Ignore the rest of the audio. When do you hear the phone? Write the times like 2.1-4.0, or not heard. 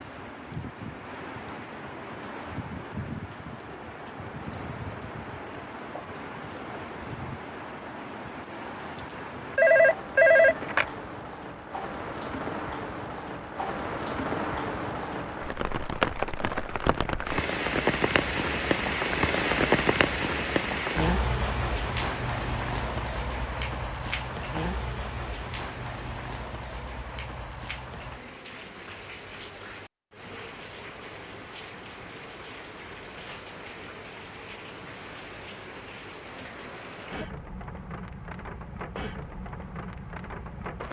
9.6-10.8.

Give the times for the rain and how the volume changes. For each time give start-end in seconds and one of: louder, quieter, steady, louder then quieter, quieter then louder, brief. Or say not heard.
0.0-40.8 louder then quieter.